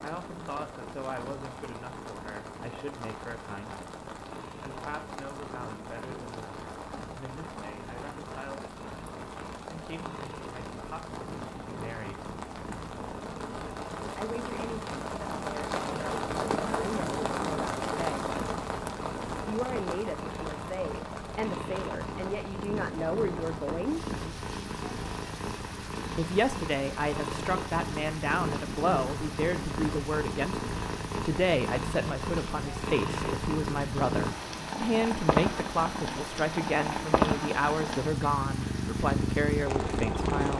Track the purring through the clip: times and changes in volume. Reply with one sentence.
The purring can be heard from 0.1 to 40.5 s, getting louder.